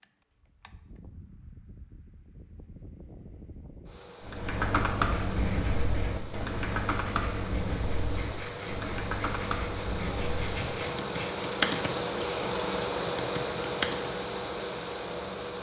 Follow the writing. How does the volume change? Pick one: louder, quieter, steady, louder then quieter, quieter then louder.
louder.